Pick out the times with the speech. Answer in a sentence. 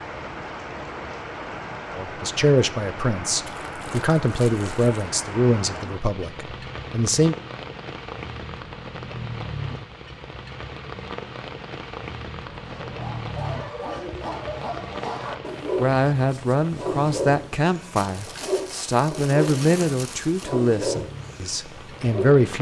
The speech can be heard from 1.9 to 7.3 s and from 15.8 to 22.5 s.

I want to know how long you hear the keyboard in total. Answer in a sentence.
The keyboard can't be heard in this clip.